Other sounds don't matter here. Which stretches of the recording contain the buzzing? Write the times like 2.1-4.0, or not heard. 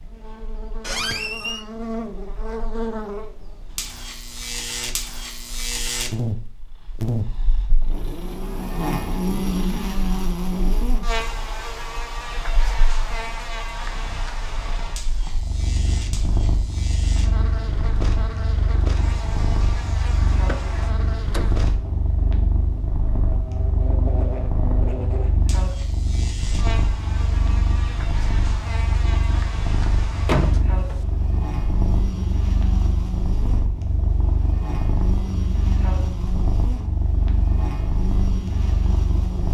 0.0-39.4.